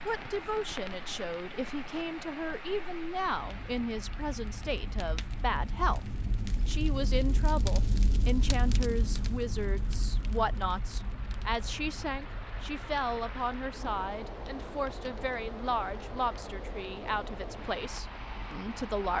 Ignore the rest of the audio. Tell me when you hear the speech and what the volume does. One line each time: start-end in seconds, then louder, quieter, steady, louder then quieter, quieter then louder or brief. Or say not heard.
0.1-19.1 steady.